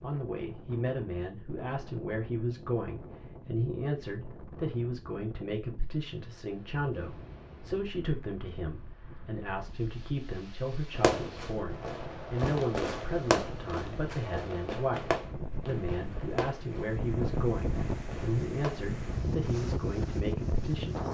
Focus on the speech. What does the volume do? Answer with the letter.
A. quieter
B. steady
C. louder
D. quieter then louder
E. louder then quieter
B.